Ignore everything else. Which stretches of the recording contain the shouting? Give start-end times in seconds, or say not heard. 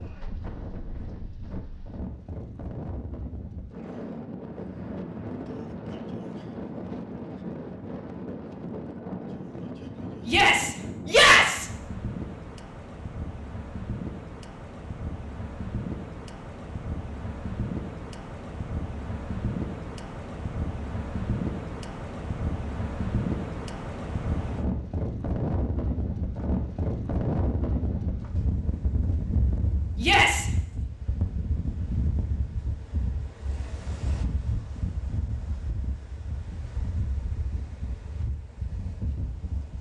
10.2-11.7, 30.0-30.4.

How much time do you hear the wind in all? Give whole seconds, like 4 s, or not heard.
40 s.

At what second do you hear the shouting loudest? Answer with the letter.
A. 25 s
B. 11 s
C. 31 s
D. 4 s
B.